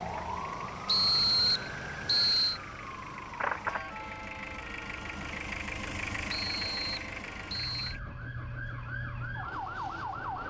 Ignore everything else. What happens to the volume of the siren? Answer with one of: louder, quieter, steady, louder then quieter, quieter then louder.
quieter then louder.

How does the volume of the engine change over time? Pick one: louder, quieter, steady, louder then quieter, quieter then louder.
louder then quieter.